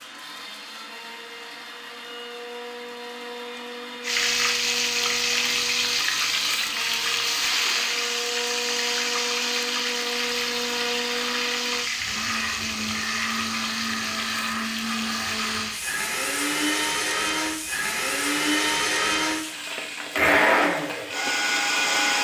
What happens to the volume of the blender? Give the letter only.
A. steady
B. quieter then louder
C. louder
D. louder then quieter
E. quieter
C.